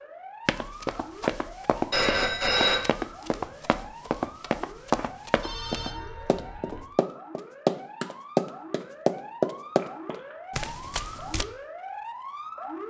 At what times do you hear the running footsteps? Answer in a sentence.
The running footsteps can be heard from 0.5 to 11.4 s.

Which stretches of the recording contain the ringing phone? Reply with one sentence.
You can hear the ringing phone from 1.9 to 2.8 s, from 5.4 to 6.8 s and from 9.7 to 10.4 s.